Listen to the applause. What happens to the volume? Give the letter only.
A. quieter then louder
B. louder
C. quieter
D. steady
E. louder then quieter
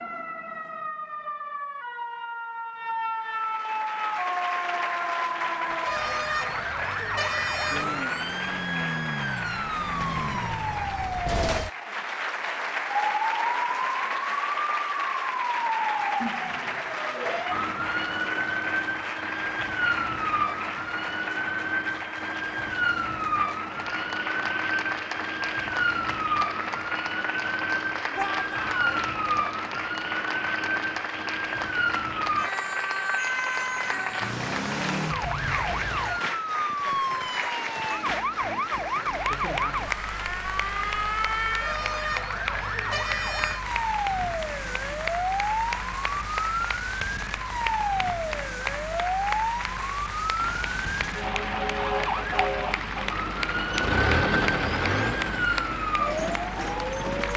D.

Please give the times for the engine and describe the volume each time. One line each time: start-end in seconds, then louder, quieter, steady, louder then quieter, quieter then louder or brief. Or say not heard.
50.4-57.3 louder then quieter.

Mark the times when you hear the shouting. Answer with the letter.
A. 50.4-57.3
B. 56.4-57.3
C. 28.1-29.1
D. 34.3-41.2
C.